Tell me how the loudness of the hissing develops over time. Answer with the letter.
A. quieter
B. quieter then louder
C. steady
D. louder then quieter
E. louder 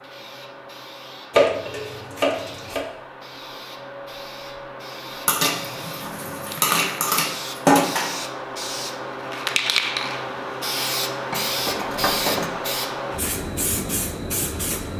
E.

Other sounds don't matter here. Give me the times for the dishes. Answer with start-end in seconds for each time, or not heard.
1.3-2.9, 5.2-8.2, 11.3-12.5.